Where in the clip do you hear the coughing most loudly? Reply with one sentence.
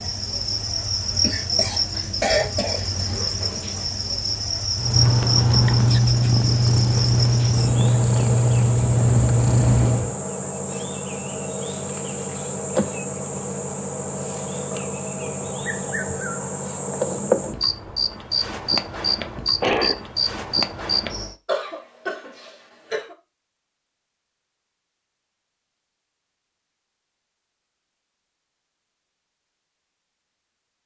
The loudest moment of the coughing is at 2 seconds.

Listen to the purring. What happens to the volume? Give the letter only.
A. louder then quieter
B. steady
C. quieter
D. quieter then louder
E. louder
B.